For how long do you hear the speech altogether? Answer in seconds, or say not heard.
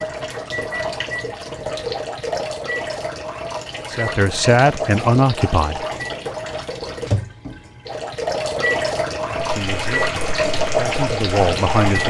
5 s.